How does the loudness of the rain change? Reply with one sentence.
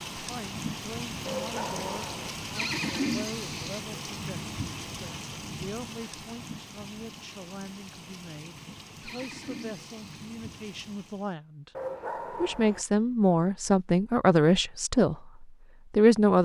The volume of the rain goes down.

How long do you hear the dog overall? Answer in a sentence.
The dog can be heard for 2 seconds in total.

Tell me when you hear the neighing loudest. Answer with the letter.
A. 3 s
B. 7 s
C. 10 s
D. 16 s
A.